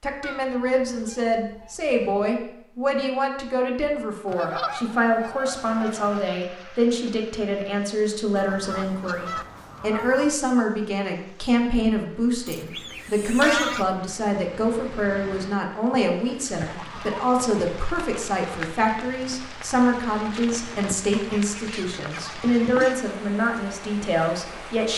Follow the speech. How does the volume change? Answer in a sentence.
The volume of the speech stays about the same.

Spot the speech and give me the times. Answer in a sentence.
You can hear the speech from 0.0 to 24.9 s.